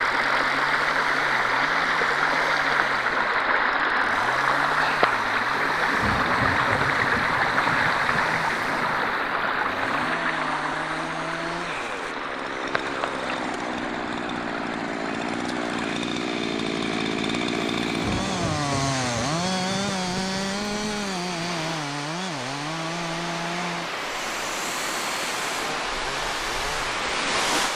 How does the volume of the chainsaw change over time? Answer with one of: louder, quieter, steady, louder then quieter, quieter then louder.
louder then quieter.